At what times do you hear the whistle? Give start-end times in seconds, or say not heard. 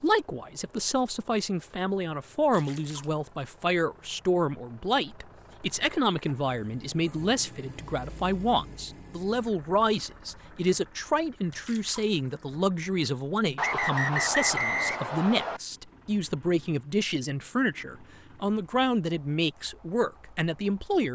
13.6-15.6.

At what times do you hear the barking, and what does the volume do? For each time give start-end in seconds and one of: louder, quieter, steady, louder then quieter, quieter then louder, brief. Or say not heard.
not heard.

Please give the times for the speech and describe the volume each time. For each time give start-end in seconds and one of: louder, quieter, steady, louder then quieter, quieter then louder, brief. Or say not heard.
0.0-21.0 steady.